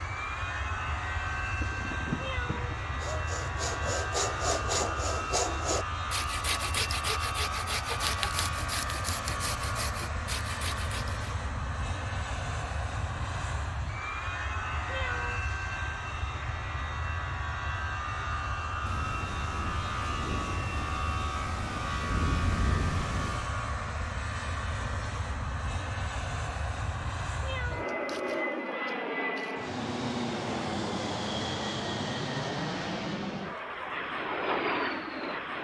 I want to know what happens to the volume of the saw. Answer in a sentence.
The loudness of the saw goes down.